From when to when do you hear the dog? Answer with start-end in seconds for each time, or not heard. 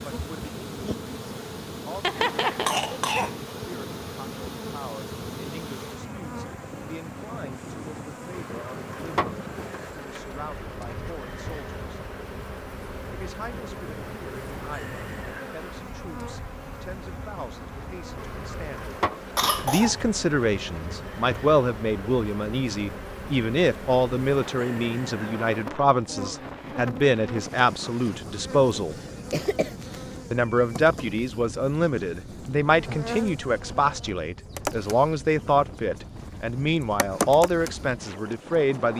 not heard.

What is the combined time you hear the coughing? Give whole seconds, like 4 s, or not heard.
3 s.